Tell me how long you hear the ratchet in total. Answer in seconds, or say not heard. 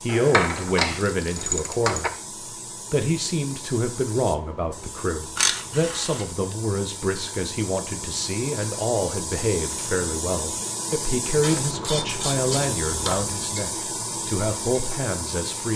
5 s.